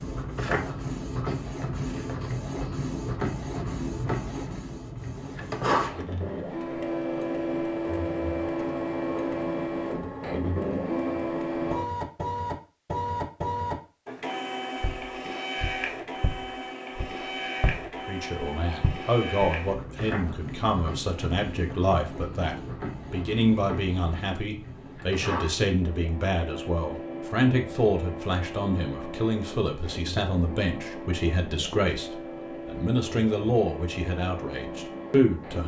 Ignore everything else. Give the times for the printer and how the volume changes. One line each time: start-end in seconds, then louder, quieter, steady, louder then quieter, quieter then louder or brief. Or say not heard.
0.0-35.6 quieter.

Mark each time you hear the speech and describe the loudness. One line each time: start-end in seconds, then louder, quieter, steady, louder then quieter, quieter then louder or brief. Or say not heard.
18.1-35.6 steady.